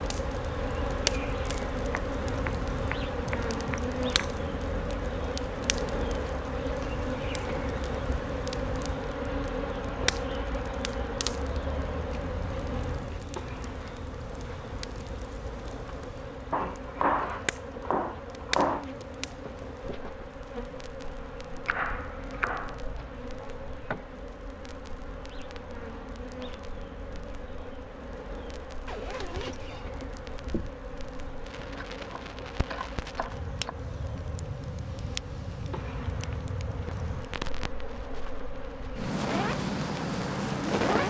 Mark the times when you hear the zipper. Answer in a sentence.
The zipper can be heard from 28.9 to 30.7 s.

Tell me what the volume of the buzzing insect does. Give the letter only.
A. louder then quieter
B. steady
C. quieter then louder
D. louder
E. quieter
E.